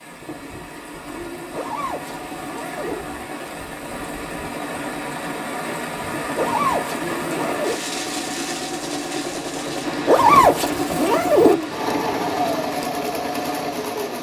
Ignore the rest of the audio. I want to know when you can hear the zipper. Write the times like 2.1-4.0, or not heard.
1.5-3.0, 6.3-7.8, 10.1-11.6.